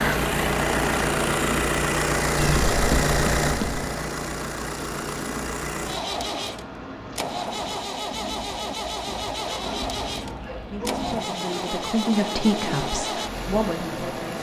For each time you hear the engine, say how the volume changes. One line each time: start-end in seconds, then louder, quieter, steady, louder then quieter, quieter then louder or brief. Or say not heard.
0.0-14.3 quieter.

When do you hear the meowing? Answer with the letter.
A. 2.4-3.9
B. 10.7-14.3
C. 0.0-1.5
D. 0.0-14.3
A.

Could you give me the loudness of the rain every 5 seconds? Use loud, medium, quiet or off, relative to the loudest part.
loud, medium, loud.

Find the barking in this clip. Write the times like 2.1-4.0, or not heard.
9.4-10.9.